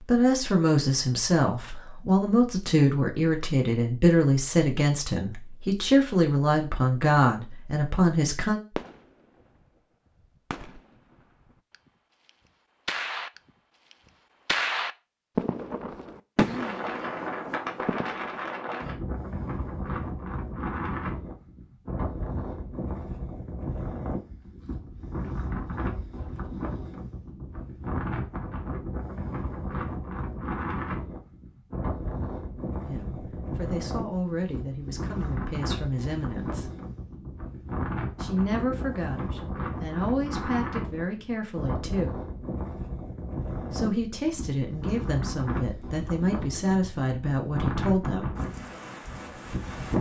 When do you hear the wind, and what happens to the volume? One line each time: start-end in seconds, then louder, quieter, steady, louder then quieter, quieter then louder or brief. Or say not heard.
16.5-49.9 steady.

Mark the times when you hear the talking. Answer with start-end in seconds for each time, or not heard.
0.1-8.6, 32.8-36.7, 38.2-42.2, 43.7-48.4.